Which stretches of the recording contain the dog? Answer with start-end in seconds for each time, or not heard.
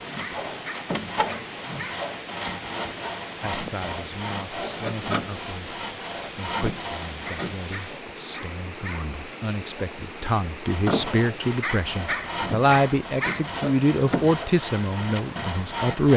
0.2-2.0, 7.2-9.1, 11.6-13.4.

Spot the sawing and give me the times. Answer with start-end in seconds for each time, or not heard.
0.0-7.6, 10.7-16.1.